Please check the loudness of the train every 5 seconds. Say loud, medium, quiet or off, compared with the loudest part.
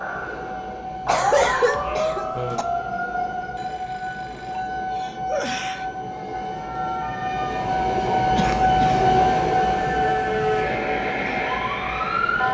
medium, loud, medium.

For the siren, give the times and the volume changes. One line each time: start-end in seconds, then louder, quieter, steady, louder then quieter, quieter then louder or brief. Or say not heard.
0.0-12.4 quieter then louder.